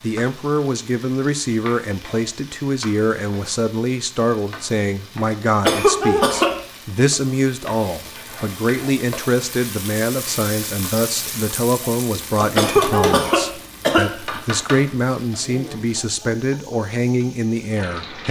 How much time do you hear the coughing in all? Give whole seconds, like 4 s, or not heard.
3 s.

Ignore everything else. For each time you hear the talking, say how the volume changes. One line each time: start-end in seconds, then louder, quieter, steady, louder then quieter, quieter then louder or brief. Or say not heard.
0.0-18.2 steady.